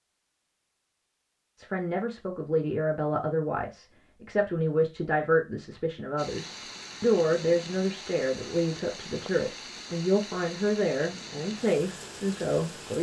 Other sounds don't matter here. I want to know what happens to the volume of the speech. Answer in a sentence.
The loudness of the speech stays about the same.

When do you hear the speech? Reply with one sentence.
You can hear the speech from 1.6 to 12.9 s.